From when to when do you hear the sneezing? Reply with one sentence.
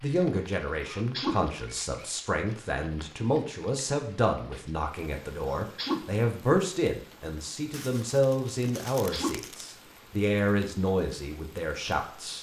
The sneezing can be heard from 0.8 to 1.5 s, from 5.5 to 6.1 s and from 8.9 to 9.4 s.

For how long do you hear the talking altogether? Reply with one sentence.
You can hear the talking for 12 seconds altogether.